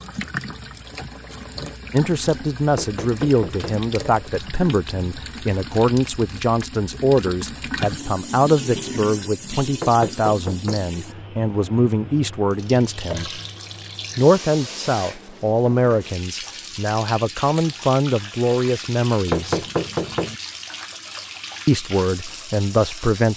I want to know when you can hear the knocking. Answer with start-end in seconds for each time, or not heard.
2.8-3.9, 9.8-10.9, 19.2-20.4.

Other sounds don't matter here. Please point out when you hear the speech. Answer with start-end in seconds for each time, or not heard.
1.9-13.4, 14.2-19.6, 21.6-23.3.